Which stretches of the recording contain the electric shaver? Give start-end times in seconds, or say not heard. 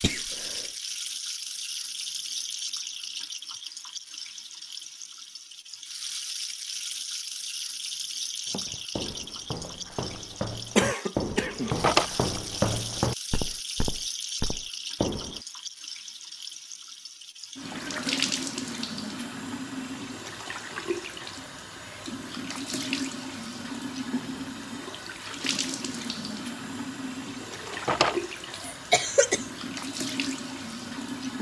not heard.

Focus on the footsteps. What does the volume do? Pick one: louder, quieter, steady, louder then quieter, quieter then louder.
louder then quieter.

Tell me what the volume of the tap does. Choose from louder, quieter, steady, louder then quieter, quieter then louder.
steady.